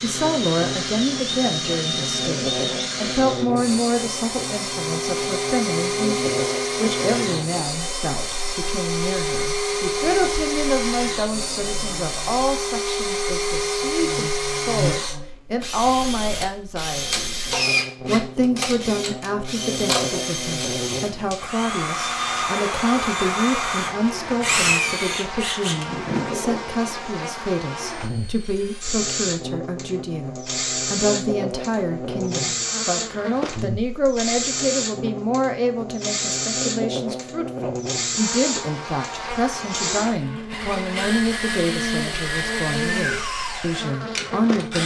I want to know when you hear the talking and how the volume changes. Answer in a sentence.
The talking can be heard from 0.0 to 44.8 s, at a steady volume.